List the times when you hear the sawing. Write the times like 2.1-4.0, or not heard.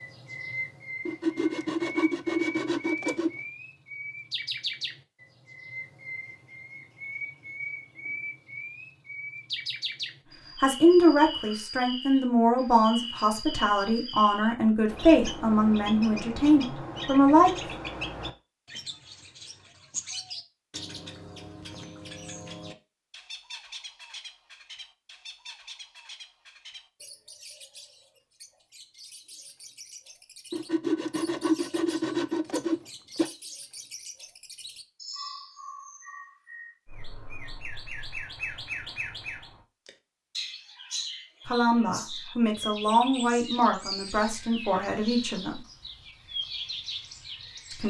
1.1-3.3, 30.5-33.3.